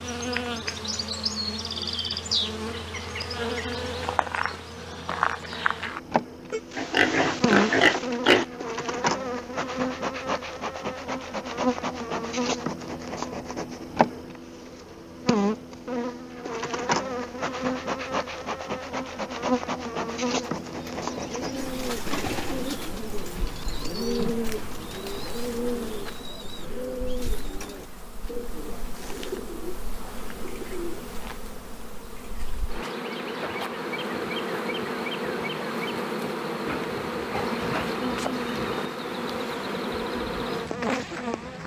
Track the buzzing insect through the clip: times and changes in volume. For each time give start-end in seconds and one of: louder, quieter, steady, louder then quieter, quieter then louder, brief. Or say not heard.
0.0-41.6 quieter then louder.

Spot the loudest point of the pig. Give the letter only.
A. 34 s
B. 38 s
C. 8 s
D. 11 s
C.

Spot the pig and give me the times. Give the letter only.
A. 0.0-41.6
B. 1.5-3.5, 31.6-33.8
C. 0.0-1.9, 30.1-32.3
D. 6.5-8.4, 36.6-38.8
D.